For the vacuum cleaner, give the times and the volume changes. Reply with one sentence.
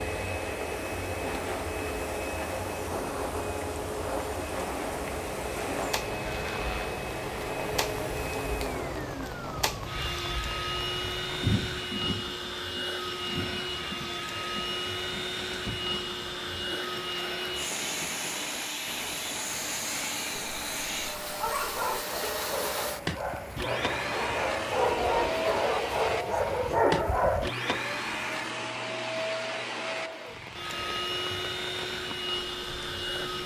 The vacuum cleaner can be heard from 0.0 to 33.4 s, at a steady volume.